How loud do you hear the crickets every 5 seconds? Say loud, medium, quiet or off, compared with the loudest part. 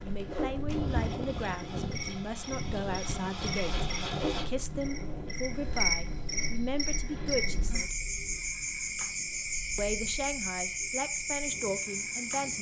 medium, loud, loud.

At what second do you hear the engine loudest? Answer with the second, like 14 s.
4 s.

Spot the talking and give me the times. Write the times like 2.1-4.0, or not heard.
0.0-8.1, 9.8-12.5.